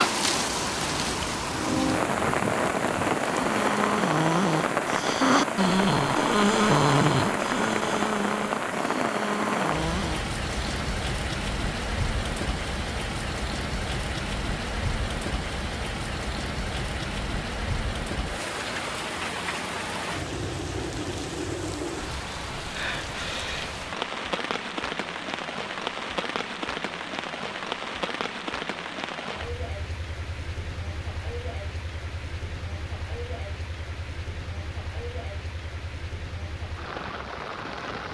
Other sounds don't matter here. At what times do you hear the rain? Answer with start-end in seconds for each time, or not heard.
0.0-38.0.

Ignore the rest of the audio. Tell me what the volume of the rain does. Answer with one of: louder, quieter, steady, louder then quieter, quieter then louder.
quieter.